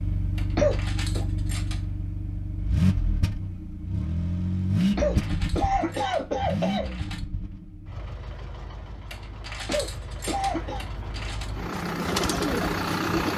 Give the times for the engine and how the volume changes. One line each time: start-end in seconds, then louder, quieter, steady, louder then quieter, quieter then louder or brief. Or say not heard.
0.0-13.3 quieter then louder.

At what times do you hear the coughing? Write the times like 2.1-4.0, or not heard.
0.6-1.2, 5.0-6.9, 9.7-10.8.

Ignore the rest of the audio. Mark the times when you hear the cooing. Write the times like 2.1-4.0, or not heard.
11.7-13.3.